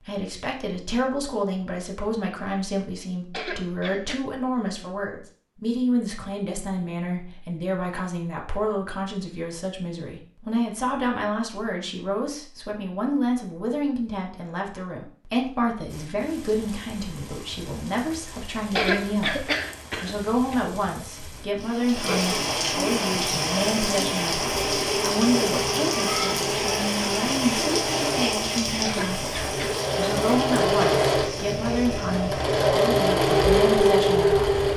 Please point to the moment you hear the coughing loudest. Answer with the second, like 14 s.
19 s.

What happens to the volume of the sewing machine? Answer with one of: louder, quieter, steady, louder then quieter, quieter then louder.
louder.